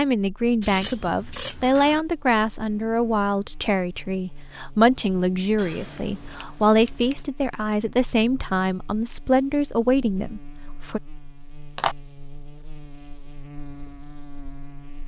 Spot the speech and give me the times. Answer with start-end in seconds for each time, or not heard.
0.0-11.0.